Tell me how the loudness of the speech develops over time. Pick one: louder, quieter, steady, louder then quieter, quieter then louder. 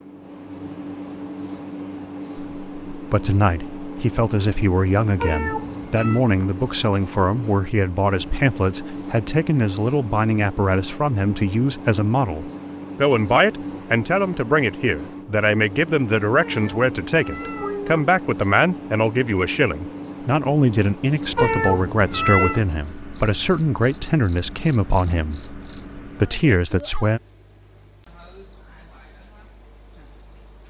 steady.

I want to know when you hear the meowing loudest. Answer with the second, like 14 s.
22 s.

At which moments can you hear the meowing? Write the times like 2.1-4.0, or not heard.
5.2-6.2, 16.4-18.1, 21.4-22.6.